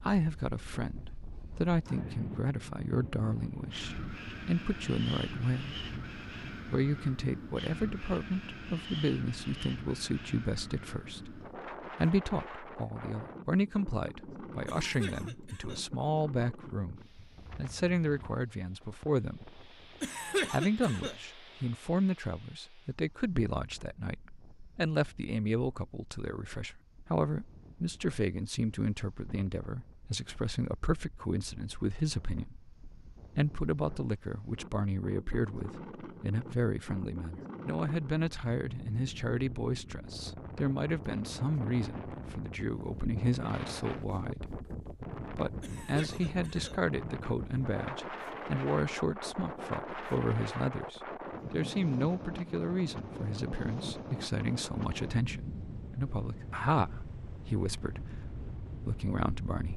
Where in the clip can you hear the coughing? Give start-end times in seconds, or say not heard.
14.7-15.8, 20.0-21.1, 45.6-46.8.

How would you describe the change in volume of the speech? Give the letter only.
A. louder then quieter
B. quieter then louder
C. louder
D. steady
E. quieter
D.